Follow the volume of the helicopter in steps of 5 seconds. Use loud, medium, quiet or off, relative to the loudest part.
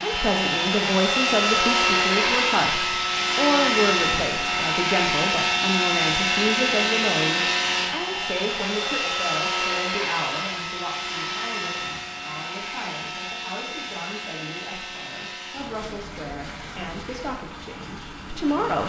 loud, loud, medium, quiet.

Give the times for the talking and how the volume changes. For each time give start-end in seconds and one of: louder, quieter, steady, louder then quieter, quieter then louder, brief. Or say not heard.
0.0-18.8 quieter.